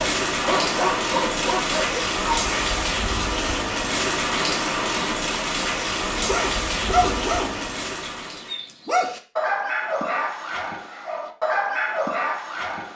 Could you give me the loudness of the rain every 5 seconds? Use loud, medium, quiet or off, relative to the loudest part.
loud, loud, off.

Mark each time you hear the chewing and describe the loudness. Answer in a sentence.
The chewing can't be heard in this clip.